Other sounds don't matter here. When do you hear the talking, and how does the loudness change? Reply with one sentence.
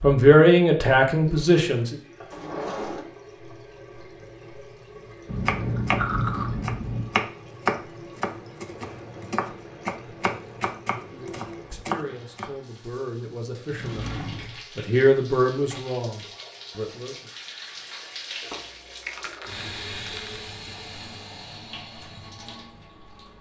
You can hear the talking briefly from 0.0 to 1.9 s; and from 11.0 to 17.3 s, getting louder then quieter.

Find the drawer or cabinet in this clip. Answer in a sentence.
You can hear the drawer or cabinet from 2.3 to 3.0 s and from 13.7 to 14.6 s.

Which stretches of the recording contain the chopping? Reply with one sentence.
The chopping can be heard from 5.5 to 12.5 s.